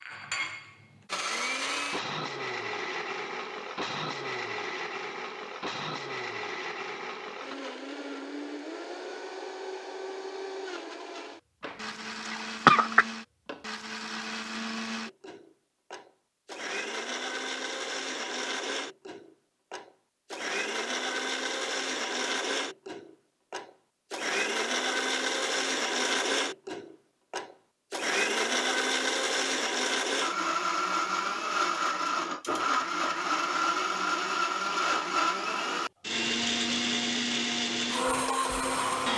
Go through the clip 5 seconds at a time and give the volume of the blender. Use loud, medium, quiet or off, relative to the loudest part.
medium, medium, medium, medium, loud, loud, loud, loud.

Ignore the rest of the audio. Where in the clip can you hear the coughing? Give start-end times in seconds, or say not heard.
11.7-13.1.